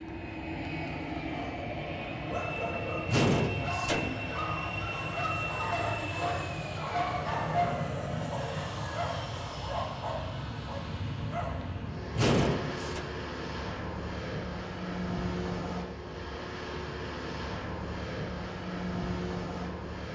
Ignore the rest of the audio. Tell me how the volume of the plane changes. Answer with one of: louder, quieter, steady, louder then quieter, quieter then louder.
steady.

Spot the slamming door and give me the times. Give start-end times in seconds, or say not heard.
3.0-4.3, 12.2-13.1.